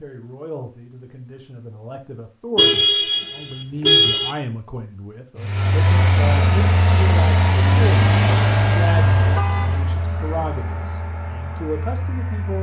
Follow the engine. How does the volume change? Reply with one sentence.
The loudness of the engine goes down.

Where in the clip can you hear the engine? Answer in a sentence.
You can hear the engine from 5.3 to 12.5 s.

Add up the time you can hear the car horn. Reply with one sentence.
The car horn can be heard for 4 seconds in total.